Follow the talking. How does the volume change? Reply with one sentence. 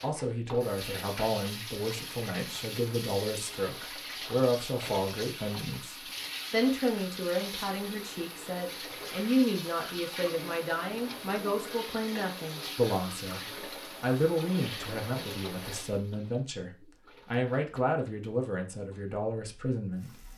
The volume of the talking stays about the same.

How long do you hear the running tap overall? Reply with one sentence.
You can hear the running tap for 20 seconds altogether.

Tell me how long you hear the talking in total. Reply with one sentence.
The talking can be heard for 20 seconds in total.